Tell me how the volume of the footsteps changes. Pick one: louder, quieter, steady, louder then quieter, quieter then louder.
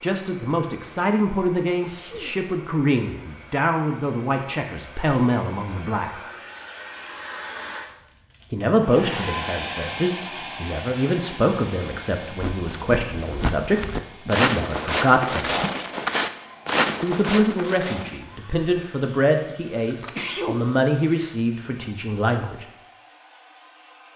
louder.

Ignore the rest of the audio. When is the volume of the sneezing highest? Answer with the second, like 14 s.
20 s.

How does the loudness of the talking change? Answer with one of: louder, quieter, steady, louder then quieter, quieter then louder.
steady.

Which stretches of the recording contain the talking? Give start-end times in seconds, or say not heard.
0.0-6.1, 8.5-15.6, 17.0-22.6.